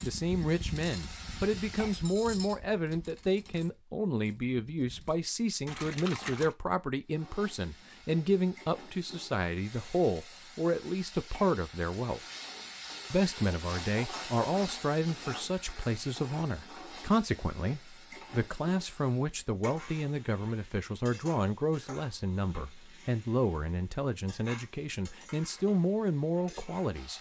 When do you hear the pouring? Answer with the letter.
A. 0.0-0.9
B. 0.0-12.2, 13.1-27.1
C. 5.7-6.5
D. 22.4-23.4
C.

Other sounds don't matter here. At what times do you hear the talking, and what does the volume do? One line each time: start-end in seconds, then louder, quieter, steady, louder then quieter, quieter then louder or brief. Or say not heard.
0.0-12.2 steady
13.1-27.1 steady.